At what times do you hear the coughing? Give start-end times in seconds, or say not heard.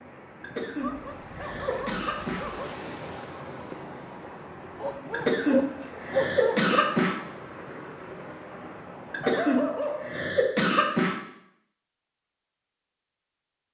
0.4-2.5, 5.1-7.2, 9.1-11.2.